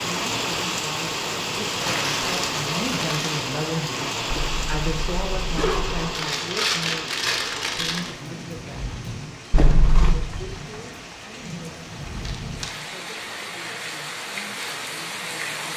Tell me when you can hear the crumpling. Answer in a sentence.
You can hear the crumpling from 1.8 to 3.5 s, from 6.1 to 8.2 s and from 12.2 to 12.7 s.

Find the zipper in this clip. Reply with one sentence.
You can hear the zipper from 4.3 to 6.2 s and from 9.5 to 10.2 s.